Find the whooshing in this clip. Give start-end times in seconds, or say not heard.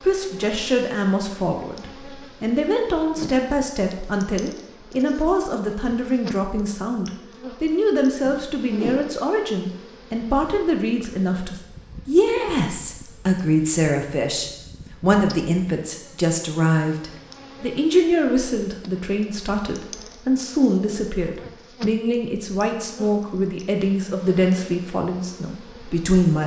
8.2-9.2.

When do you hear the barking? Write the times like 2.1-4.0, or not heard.
not heard.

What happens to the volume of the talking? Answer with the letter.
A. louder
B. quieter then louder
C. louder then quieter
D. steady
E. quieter
D.